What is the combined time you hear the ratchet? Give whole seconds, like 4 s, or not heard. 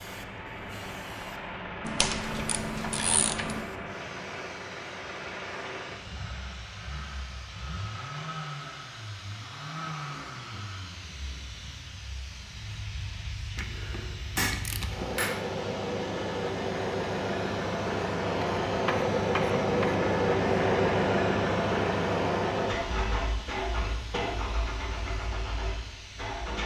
5 s.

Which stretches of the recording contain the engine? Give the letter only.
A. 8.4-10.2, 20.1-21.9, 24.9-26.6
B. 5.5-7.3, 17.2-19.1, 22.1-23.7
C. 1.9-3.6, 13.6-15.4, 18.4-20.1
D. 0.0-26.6
D.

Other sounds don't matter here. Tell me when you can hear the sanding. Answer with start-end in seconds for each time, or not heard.
not heard.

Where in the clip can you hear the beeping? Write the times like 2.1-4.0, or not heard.
not heard.